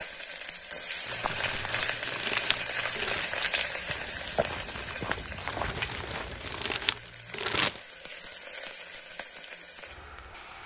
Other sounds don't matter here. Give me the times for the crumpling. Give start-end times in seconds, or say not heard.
1.1-3.3, 5.5-7.8.